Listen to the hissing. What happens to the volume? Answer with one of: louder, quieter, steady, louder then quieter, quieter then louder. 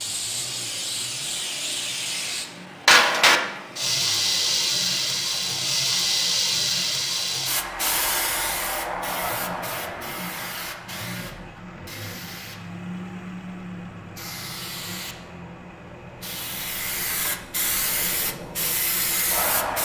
quieter then louder.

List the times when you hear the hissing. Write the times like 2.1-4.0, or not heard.
0.0-19.8.